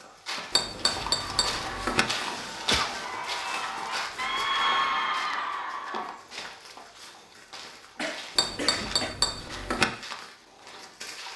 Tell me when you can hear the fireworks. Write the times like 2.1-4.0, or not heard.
not heard.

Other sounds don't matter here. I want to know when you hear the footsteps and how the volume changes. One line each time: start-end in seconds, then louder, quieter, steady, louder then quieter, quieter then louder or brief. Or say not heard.
0.0-11.3 quieter.